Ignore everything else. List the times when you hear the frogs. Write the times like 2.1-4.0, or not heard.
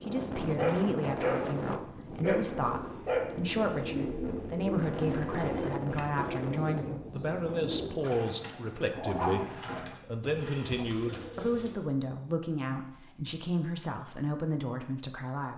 not heard.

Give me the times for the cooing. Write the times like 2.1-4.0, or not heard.
2.2-11.8.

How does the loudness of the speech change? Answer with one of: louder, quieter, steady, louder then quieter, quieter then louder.
steady.